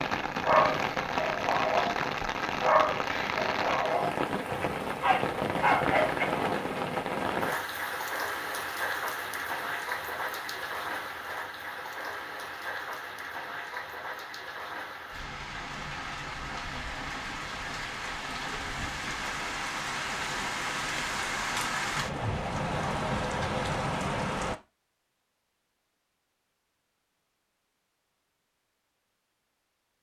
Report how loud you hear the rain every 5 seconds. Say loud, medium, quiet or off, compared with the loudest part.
loud, loud, medium, medium, loud, off.